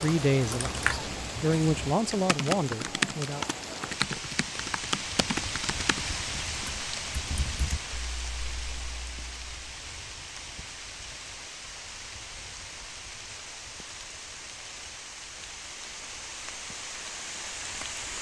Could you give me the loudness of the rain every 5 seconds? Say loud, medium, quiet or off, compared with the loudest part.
loud, loud, medium, loud.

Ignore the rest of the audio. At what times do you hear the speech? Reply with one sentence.
You can hear the speech from 0.0 to 3.5 s.